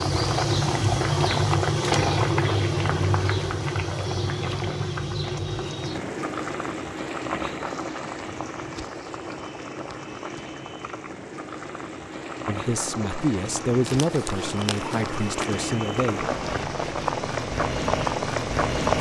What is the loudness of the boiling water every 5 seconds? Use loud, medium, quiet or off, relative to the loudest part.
loud, medium, medium, loud.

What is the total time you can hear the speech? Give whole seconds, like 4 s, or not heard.
4 s.